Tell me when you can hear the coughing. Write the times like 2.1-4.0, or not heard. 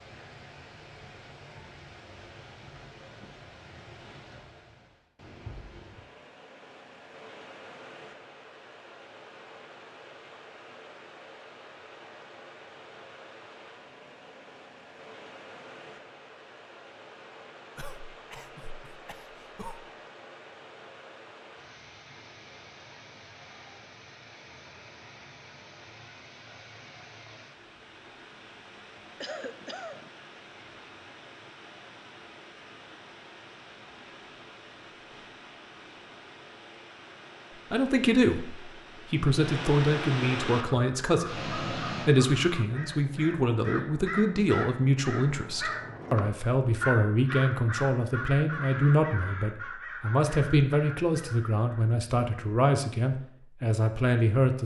17.8-19.9, 29.2-30.1.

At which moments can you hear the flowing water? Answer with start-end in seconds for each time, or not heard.
0.0-42.1.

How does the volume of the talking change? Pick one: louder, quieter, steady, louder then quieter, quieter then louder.
steady.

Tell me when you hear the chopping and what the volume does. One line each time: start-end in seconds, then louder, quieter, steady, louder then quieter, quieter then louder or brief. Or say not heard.
not heard.